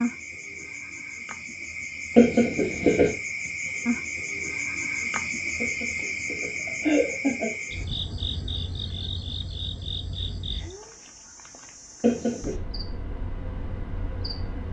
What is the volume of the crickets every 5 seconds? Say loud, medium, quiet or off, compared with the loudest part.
loud, loud, medium.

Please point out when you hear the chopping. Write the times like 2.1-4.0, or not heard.
not heard.